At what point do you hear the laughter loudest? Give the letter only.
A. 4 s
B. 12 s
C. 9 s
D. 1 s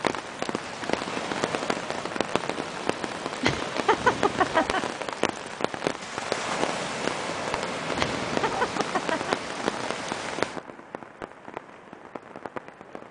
A.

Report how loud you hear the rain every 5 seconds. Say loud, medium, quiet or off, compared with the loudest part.
loud, loud, medium.